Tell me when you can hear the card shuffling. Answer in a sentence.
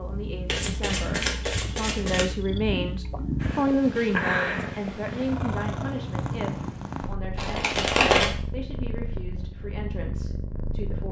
The card shuffling can be heard from 0.5 to 2.2 s and from 7.3 to 8.3 s.